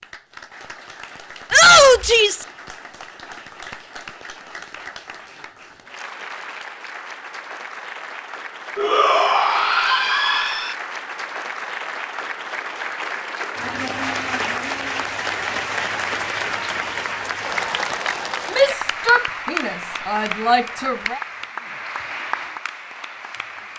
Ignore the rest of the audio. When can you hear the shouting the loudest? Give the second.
2 s.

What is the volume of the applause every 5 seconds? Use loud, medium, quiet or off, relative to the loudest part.
quiet, medium, loud, loud, medium.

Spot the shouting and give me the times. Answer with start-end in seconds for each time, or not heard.
1.5-2.5, 8.8-10.8, 18.5-21.2.